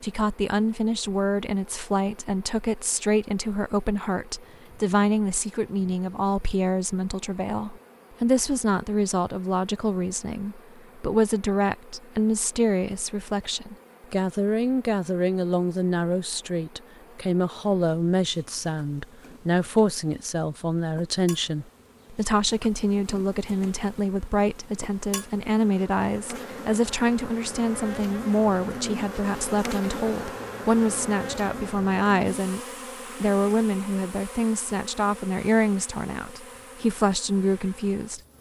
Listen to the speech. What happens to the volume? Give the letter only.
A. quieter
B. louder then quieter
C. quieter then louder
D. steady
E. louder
D.